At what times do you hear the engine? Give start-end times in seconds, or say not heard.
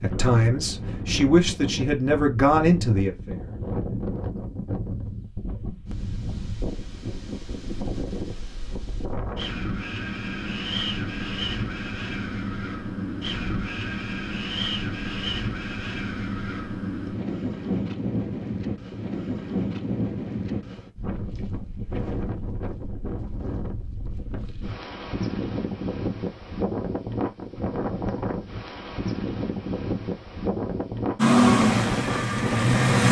31.1-33.0.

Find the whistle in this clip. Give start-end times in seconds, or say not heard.
not heard.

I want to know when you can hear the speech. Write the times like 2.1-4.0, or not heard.
0.0-3.5.